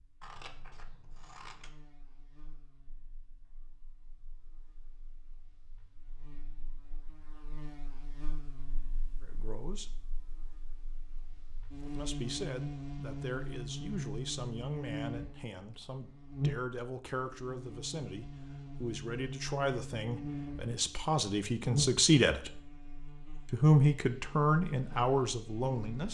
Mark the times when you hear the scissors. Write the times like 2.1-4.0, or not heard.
0.2-1.7.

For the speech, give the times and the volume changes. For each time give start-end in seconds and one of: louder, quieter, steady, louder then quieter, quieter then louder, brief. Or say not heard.
9.2-9.9 brief
11.8-22.6 louder
23.5-26.0 brief.